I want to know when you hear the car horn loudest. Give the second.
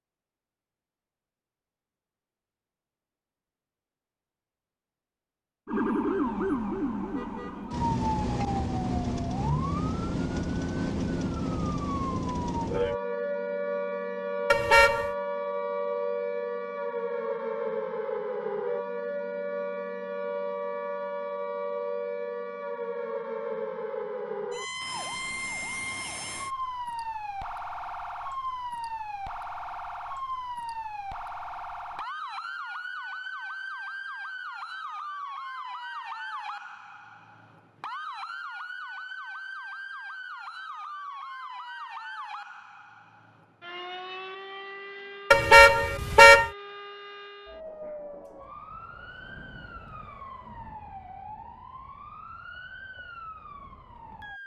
46 s.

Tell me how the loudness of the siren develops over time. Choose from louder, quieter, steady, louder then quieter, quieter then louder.
quieter.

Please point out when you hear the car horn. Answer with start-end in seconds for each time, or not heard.
14.5-15.1, 45.3-46.5.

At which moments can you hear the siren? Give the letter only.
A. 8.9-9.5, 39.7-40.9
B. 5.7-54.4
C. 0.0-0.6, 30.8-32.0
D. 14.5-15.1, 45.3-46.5
B.